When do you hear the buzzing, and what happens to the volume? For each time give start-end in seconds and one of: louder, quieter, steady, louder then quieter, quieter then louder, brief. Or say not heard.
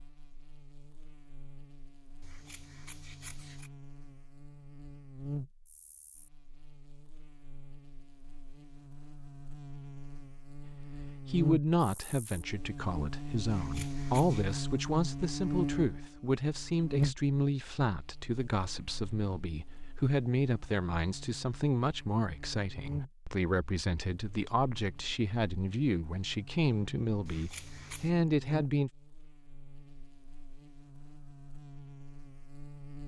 0.0-33.0 louder then quieter.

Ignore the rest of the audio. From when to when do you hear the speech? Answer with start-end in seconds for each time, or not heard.
10.6-28.9.